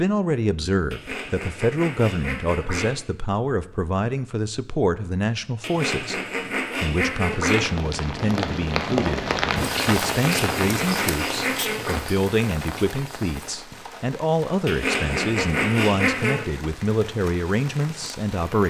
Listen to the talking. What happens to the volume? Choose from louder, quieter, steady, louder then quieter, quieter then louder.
steady.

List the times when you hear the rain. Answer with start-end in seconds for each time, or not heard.
7.2-18.6.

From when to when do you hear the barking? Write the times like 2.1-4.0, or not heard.
not heard.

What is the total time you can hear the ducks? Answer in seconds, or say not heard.
8 s.